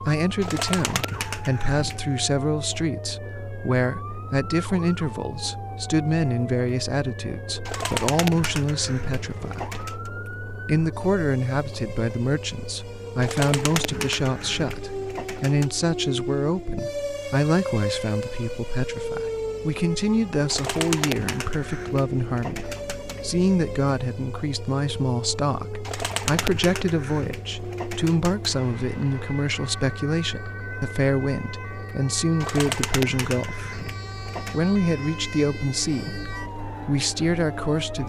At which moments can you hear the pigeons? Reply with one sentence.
The pigeons can be heard from 0.4 to 2.2 s, from 7.7 to 10.1 s, from 13.2 to 15.7 s, from 20.4 to 23.2 s, from 25.9 to 28.6 s and from 32.4 to 34.5 s.